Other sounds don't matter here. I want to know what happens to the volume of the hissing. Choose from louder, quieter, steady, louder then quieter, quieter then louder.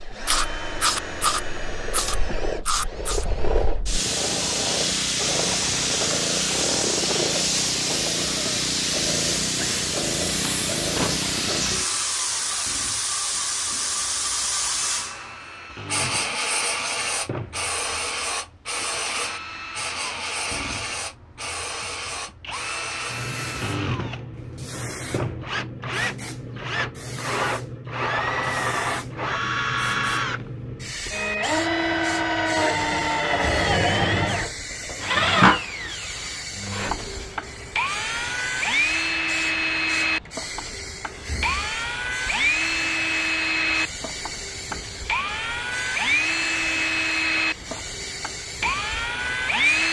quieter.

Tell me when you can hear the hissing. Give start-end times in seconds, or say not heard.
0.0-49.8.